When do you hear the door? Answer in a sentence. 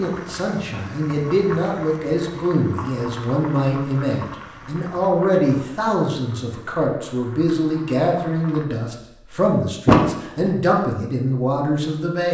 The door can be heard from 9.8 to 10.5 s.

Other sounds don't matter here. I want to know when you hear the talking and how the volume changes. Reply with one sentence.
You can hear the talking from 0.0 to 12.3 s, at a steady volume.